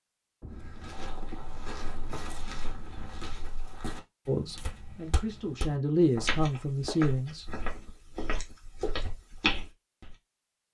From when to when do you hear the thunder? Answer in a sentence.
You can hear the thunder from 0.4 to 3.5 s.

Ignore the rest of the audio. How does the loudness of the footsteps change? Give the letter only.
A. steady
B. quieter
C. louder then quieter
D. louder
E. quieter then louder
D.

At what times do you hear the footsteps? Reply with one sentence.
The footsteps can be heard from 0.5 to 10.2 s.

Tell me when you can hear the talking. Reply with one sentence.
You can hear the talking from 4.2 to 7.7 s.